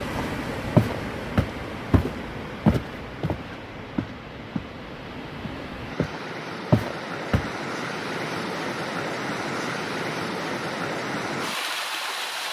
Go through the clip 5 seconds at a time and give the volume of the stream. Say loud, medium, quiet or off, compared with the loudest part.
medium, loud, loud.